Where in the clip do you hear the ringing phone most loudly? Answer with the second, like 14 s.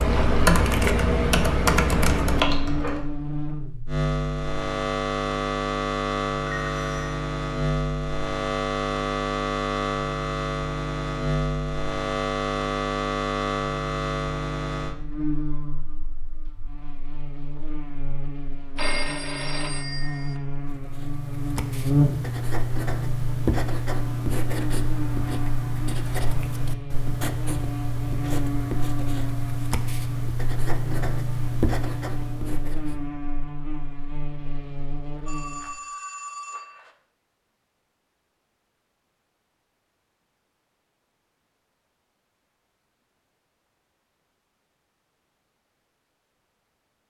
19 s.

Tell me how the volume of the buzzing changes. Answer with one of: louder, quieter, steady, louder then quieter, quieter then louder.
quieter.